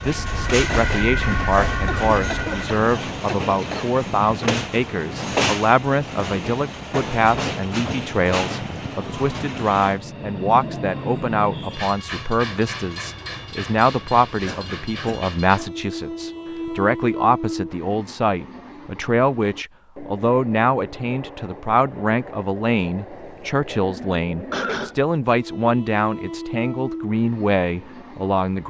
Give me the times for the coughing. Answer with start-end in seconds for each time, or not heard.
1.9-3.9, 14.4-15.2, 24.5-24.9.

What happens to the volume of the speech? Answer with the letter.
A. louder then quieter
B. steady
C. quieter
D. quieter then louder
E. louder
B.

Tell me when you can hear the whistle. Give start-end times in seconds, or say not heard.
not heard.